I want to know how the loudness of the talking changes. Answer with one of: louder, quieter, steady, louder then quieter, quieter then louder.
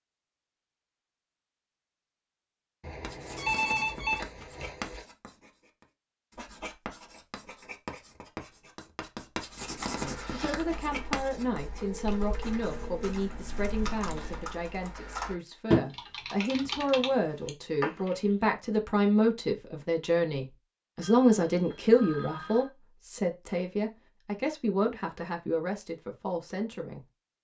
louder then quieter.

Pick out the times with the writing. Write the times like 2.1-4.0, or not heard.
3.0-14.4.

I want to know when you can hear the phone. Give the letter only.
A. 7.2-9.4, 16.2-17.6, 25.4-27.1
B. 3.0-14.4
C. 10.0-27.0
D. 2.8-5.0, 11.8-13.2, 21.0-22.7
D.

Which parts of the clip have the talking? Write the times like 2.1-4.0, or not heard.
10.0-27.0.